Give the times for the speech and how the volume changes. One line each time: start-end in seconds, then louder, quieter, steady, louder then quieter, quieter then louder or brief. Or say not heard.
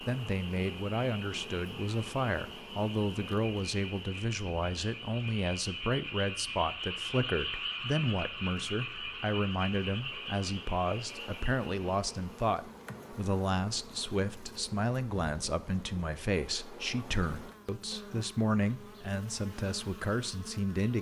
0.0-20.9 steady.